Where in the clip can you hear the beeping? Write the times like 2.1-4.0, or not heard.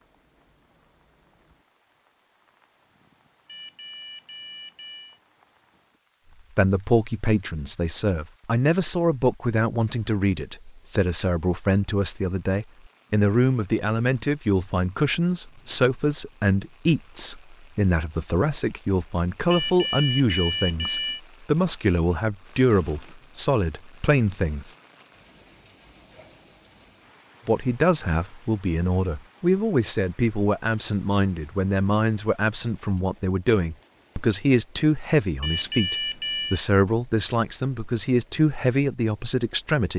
3.5-5.2, 19.5-21.2, 35.4-36.6.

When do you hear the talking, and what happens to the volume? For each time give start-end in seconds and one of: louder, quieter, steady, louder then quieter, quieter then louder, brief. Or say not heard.
6.5-24.7 steady
27.4-39.9 steady.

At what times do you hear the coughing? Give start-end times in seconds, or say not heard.
not heard.